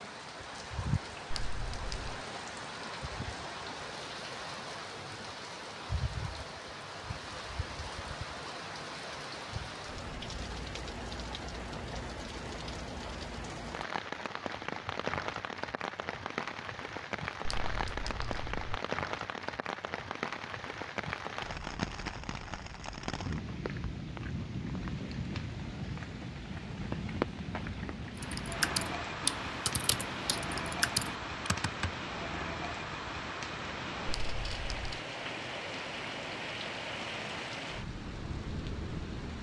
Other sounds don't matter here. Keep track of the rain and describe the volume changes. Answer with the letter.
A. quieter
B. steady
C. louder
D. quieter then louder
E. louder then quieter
B.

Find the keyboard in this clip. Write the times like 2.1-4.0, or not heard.
28.1-31.9.